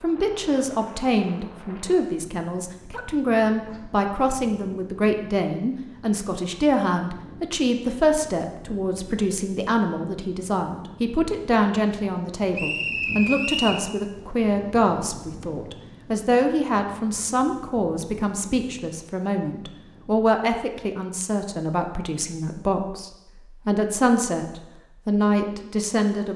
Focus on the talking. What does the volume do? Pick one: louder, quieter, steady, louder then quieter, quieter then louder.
steady.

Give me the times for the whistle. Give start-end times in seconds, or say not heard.
12.5-13.8.